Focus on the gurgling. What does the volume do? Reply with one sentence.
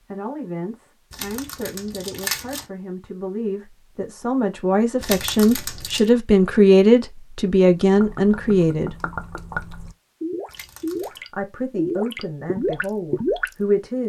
The volume of the gurgling goes up.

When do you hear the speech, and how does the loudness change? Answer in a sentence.
The speech can be heard from 0.0 to 8.9 s, getting louder; and briefly from 11.3 to 14.0 s.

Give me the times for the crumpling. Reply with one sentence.
You can hear the crumpling from 1.1 to 2.6 s, from 5.0 to 6.1 s and from 10.4 to 11.2 s.